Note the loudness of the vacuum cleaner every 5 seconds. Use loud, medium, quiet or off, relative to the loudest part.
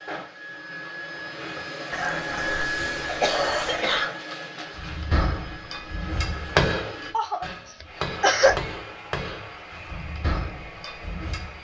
loud, medium, medium.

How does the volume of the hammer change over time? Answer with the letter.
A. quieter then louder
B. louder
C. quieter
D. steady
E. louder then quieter
E.